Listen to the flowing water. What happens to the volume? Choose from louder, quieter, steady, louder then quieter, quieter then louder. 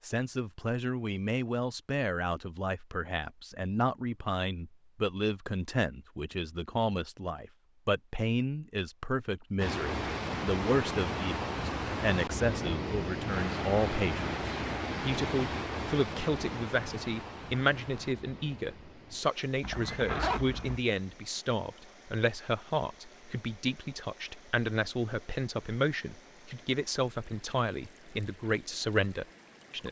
quieter.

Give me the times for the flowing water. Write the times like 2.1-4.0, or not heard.
9.6-29.8.